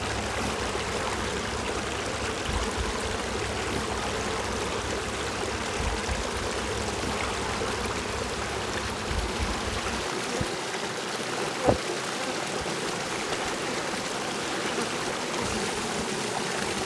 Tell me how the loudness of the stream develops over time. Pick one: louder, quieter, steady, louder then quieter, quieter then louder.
steady.